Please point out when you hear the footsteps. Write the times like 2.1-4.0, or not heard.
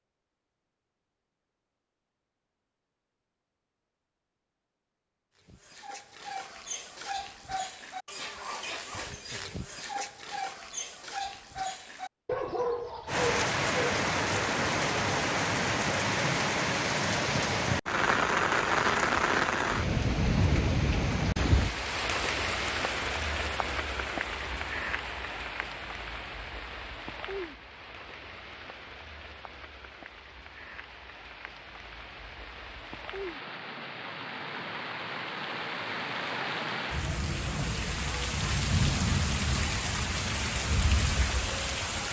not heard.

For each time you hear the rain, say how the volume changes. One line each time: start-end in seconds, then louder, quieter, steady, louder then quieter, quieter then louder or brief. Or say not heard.
13.1-42.0 quieter then louder.